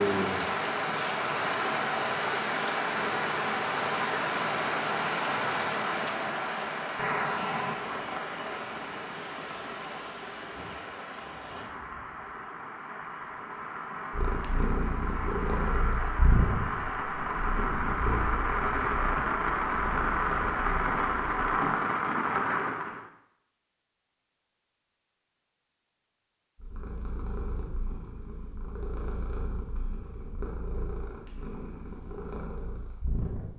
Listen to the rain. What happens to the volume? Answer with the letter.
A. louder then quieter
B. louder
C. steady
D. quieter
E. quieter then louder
E.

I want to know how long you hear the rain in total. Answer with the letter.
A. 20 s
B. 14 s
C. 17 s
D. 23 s
D.